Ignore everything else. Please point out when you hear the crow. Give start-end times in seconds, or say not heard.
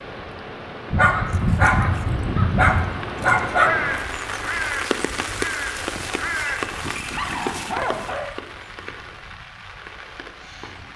0.9-6.8.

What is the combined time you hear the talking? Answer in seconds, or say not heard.
not heard.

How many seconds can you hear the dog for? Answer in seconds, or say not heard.
5 s.